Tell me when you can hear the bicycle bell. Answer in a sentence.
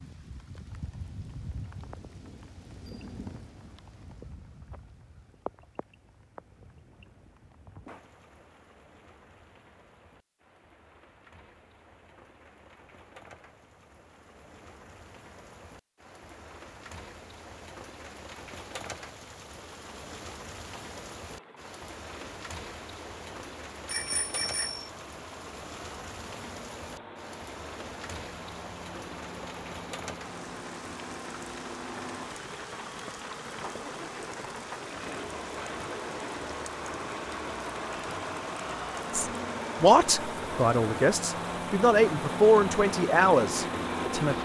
You can hear the bicycle bell from 23.9 to 24.9 s.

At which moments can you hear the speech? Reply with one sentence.
The speech can be heard from 39.1 to 44.3 s.